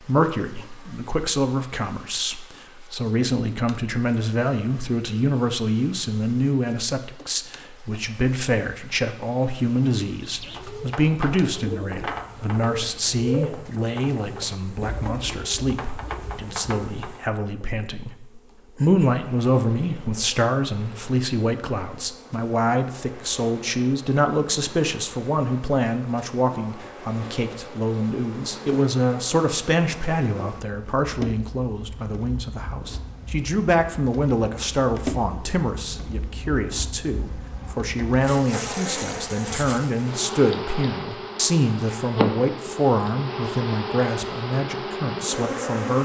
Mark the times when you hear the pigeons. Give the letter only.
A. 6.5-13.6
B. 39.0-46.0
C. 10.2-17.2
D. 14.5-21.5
C.